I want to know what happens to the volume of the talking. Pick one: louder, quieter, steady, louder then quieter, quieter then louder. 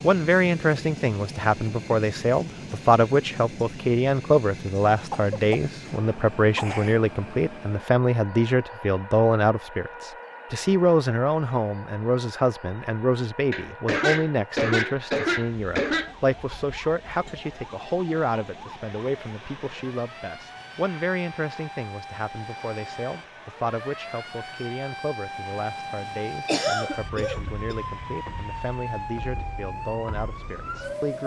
quieter.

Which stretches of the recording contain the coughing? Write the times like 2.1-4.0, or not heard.
5.1-5.6, 6.5-7.0, 13.5-16.1, 26.4-27.8.